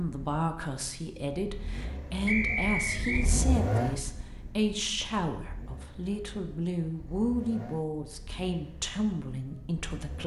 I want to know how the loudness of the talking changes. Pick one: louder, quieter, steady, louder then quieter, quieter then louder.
steady.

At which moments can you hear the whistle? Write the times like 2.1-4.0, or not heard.
2.2-3.2.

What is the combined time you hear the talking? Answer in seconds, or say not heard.
10 s.